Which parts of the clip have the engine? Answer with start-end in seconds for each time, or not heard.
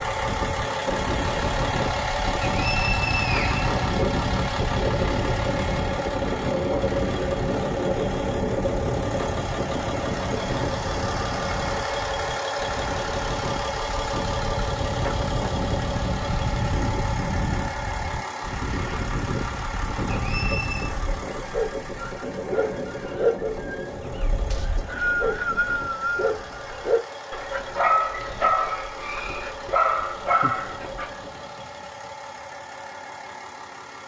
0.0-34.0.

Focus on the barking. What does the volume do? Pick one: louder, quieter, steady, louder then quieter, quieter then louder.
quieter then louder.